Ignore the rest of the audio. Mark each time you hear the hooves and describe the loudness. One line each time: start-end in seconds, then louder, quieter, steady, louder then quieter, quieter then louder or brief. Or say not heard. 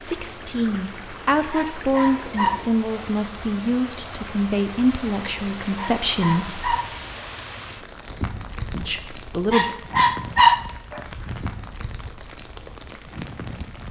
not heard.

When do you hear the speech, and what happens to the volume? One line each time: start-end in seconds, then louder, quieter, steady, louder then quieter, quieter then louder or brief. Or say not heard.
0.0-6.8 steady
8.7-9.7 brief.